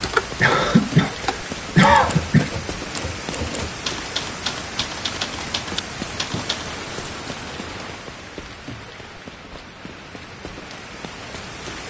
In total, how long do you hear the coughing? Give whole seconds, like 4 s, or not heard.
2 s.